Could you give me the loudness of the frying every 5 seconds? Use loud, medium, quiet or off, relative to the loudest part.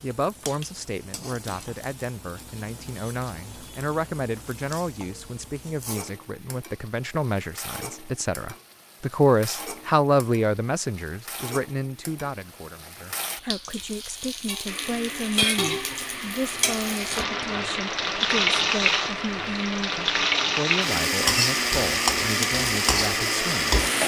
quiet, quiet, quiet, loud, loud.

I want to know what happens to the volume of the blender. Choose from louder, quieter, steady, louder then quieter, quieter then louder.
louder.